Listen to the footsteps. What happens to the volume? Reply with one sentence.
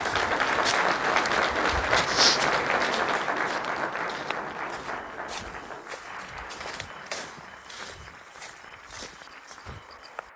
The loudness of the footsteps goes down.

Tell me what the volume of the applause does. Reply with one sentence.
The volume of the applause goes down.